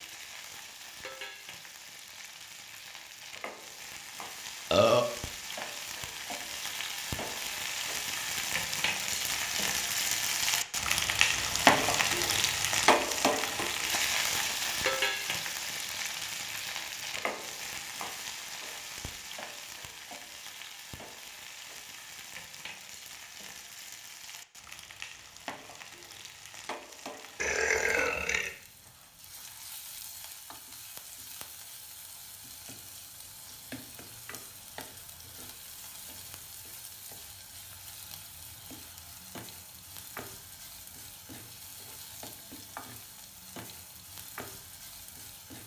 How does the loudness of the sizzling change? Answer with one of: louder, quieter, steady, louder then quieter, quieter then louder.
louder then quieter.